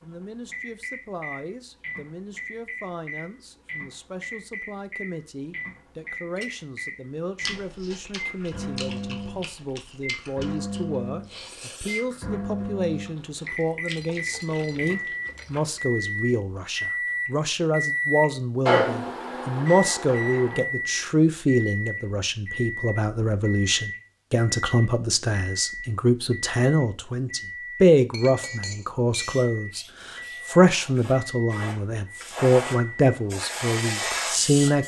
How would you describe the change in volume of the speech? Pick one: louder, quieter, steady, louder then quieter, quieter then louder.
louder.